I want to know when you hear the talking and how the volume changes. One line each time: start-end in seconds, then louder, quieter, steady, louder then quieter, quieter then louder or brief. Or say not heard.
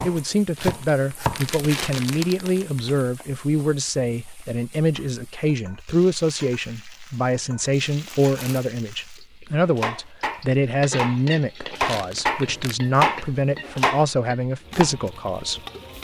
0.0-15.6 steady.